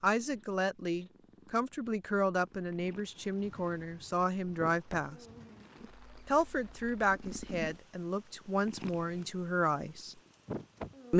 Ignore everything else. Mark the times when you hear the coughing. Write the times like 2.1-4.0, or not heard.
not heard.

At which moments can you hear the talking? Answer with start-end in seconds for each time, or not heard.
0.0-5.2, 6.2-10.2.